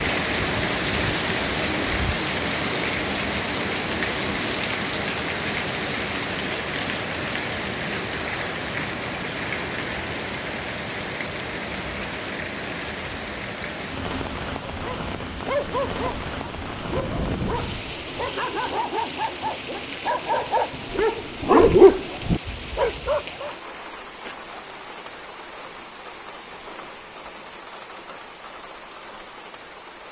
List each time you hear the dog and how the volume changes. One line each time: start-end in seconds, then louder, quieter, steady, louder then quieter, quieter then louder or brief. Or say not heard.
14.7-23.6 louder.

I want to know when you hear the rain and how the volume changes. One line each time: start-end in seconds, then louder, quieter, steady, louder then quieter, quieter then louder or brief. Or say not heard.
0.0-30.0 quieter.